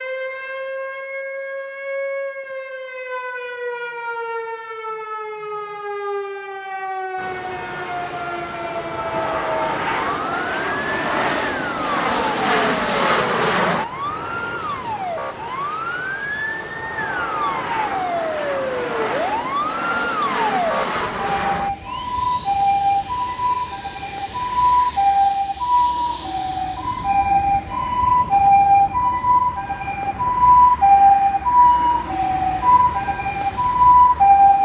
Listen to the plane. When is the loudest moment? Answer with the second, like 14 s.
13 s.